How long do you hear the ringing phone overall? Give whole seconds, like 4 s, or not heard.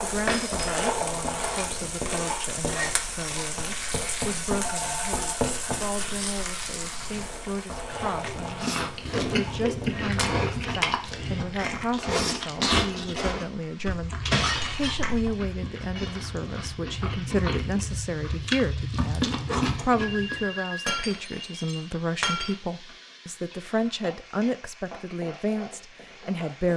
2 s.